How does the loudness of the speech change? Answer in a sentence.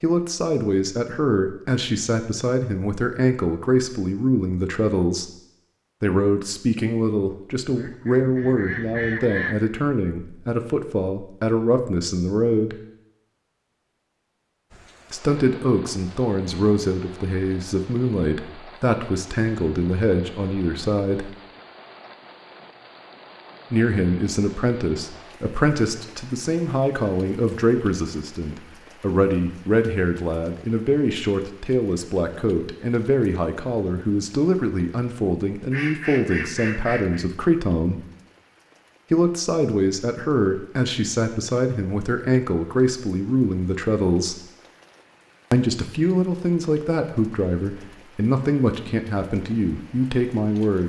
The loudness of the speech stays about the same.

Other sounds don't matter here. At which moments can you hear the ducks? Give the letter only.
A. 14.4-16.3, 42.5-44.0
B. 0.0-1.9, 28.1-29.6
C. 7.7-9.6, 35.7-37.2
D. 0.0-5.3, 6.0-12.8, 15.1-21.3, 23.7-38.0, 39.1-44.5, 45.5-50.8
C.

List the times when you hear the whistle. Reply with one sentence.
You can't hear the whistle here.